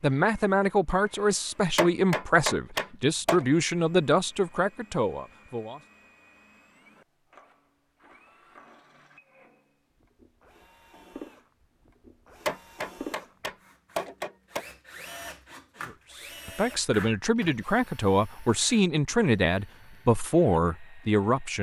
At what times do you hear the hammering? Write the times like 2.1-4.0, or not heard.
1.8-3.5, 12.4-14.7.